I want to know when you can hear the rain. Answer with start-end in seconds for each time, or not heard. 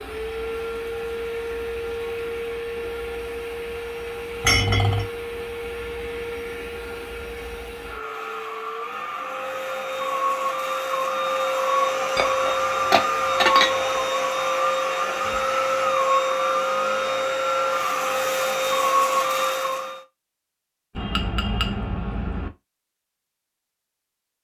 not heard.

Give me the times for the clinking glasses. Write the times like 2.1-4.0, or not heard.
4.4-5.0, 12.2-13.9, 20.9-22.5.